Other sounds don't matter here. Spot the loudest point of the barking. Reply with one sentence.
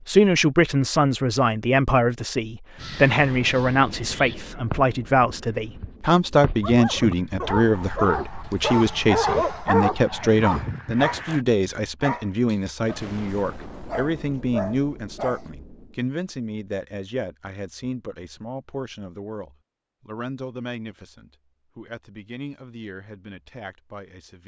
The loudest moment of the barking is at 9 seconds.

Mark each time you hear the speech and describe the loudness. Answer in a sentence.
The speech can be heard from 0.1 to 24.4 s, getting quieter.